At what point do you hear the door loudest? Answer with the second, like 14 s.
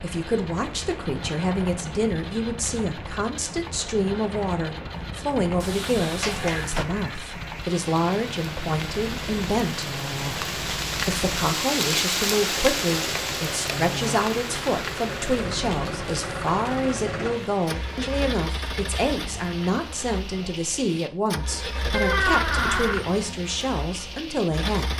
22 s.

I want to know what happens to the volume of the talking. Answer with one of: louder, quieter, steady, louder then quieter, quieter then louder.
steady.